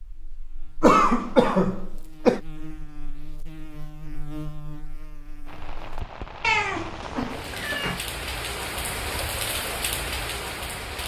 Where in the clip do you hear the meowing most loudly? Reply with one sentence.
The volume of the meowing peaks at 7 seconds.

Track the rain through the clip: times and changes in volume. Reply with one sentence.
The rain can be heard from 5.5 to 11.0 s, getting louder.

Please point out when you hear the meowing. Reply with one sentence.
You can hear the meowing from 0.8 to 1.5 s and from 6.4 to 8.0 s.